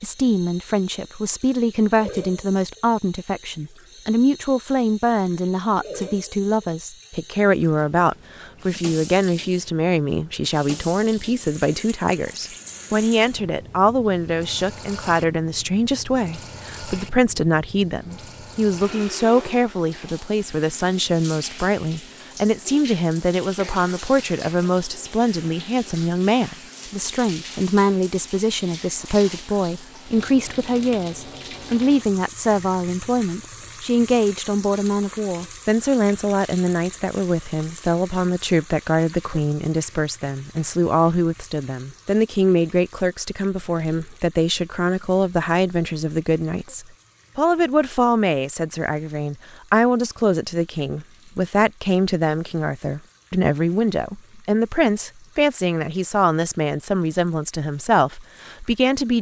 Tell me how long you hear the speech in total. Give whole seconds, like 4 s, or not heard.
59 s.